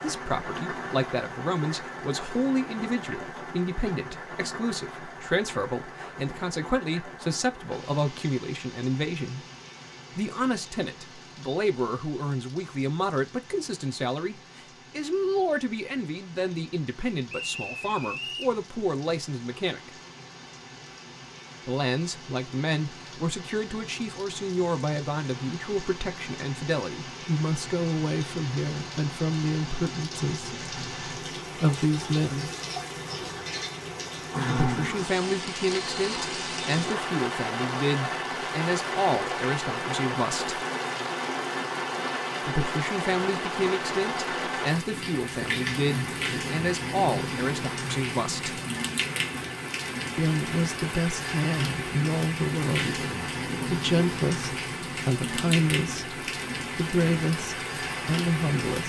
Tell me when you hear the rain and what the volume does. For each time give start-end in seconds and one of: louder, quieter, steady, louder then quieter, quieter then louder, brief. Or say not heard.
0.0-58.8 quieter then louder.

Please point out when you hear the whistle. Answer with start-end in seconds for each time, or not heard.
17.2-18.6.